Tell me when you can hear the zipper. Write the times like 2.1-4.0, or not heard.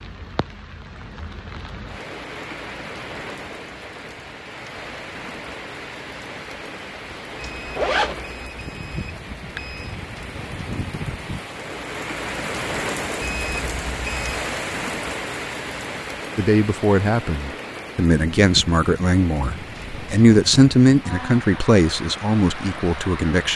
7.1-8.2.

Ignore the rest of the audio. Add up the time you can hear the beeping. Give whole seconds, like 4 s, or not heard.
4 s.